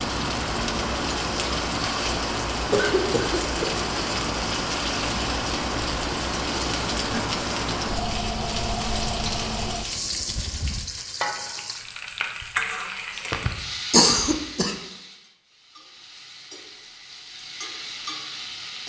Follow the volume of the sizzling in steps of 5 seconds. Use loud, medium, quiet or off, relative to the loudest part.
loud, loud, loud, medium.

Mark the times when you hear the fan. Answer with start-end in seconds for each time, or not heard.
0.0-10.9.